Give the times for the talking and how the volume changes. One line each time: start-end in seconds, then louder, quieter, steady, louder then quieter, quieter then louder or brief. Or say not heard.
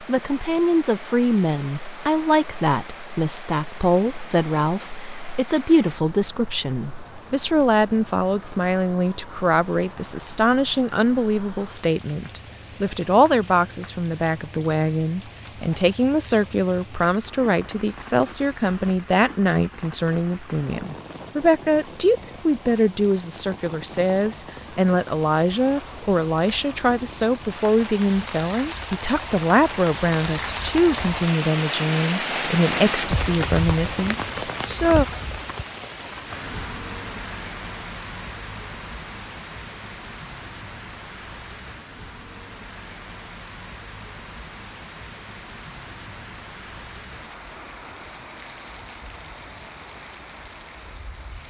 0.0-35.0 steady.